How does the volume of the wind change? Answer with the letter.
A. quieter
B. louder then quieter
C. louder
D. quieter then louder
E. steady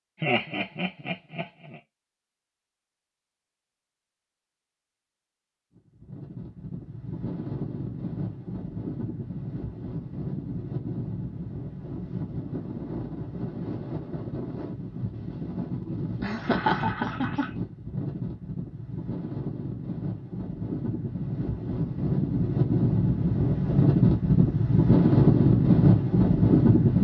C.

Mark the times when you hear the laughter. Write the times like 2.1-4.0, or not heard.
0.2-1.8, 15.8-17.5.